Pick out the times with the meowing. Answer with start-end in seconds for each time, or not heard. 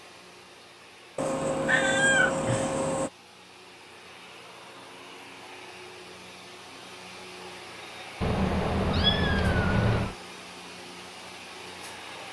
1.1-3.1, 8.2-10.2.